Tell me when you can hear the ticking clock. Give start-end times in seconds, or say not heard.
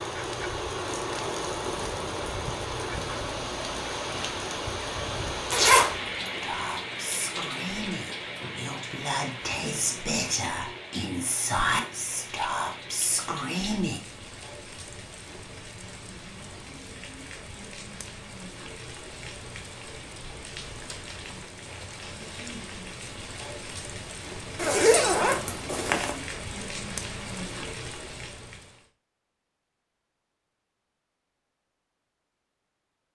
not heard.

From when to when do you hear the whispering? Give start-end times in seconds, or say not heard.
6.4-14.0.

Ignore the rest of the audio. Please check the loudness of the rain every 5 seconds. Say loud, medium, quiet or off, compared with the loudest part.
loud, loud, medium, medium, medium, medium, off.